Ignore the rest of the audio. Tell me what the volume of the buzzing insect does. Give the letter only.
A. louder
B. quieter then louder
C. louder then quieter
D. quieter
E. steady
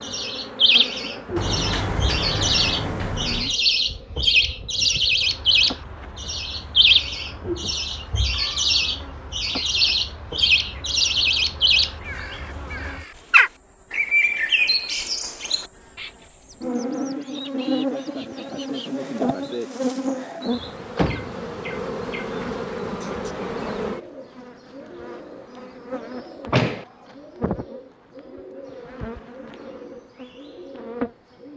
C.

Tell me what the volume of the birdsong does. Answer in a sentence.
The volume of the birdsong goes down.